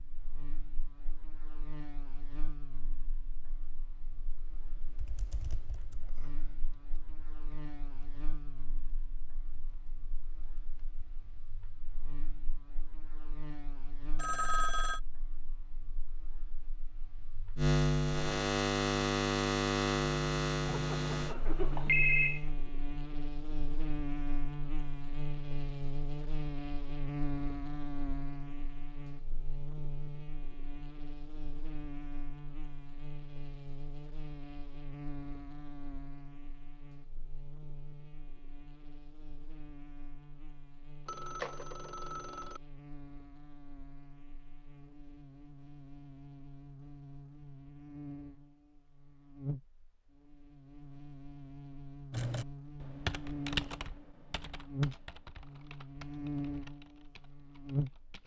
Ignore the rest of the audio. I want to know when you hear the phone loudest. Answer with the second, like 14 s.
22 s.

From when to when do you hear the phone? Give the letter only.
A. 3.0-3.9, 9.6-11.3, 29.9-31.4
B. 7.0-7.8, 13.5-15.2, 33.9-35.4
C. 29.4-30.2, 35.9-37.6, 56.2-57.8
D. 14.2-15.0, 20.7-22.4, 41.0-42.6
D.